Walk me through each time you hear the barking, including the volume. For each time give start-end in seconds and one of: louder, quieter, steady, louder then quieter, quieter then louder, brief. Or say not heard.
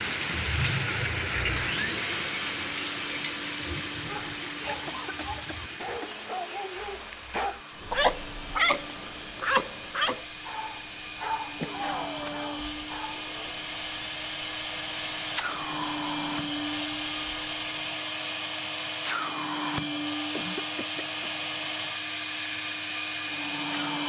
4.0-13.6 louder then quieter.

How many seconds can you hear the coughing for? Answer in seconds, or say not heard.
3 s.